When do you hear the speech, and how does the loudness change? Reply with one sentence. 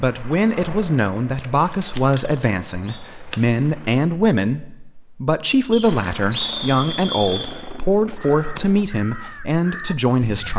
You can hear the speech from 0.0 to 10.5 s, at a steady volume.